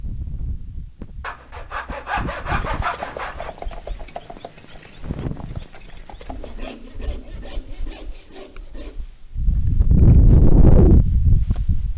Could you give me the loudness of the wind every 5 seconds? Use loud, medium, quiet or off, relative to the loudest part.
quiet, quiet, loud.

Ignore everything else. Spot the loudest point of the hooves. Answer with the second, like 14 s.
3 s.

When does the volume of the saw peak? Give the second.
3 s.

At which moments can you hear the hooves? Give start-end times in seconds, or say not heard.
2.5-6.8.